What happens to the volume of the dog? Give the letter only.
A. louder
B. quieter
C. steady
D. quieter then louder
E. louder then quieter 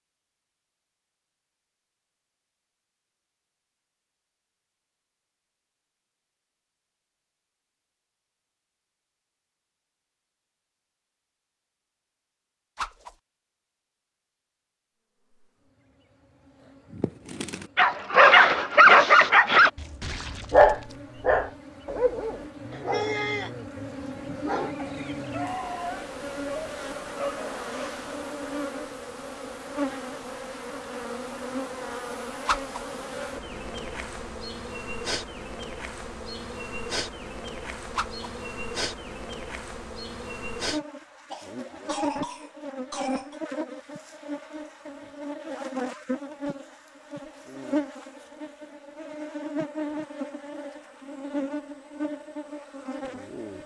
B.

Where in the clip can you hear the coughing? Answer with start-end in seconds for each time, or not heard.
41.3-43.4.